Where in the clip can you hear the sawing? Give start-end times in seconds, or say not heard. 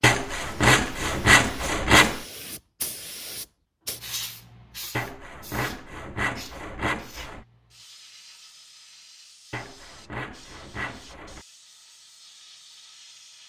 0.0-2.2, 5.0-7.5, 9.5-11.4.